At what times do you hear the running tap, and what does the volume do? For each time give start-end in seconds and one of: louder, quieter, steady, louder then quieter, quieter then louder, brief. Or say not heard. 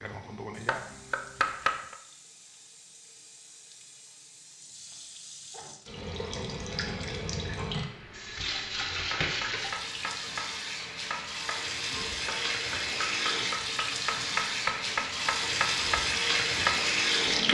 0.0-17.4 louder.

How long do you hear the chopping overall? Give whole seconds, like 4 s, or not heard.
10 s.